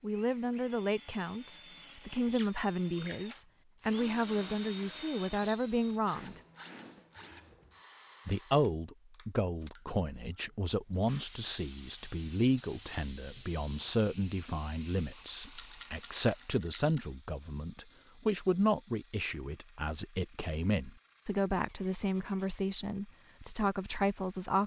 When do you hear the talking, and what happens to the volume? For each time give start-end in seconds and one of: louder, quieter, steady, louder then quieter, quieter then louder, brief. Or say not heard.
0.0-6.4 steady
8.2-24.6 steady.